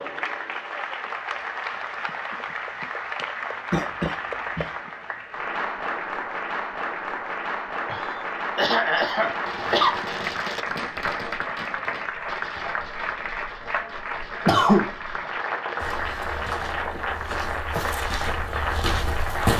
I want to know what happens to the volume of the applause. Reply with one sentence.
The volume of the applause stays about the same.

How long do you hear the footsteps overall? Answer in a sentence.
The footsteps can be heard for 4 seconds in total.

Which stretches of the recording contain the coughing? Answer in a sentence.
You can hear the coughing from 3.7 to 4.7 s, from 7.8 to 9.9 s and from 14.4 to 14.8 s.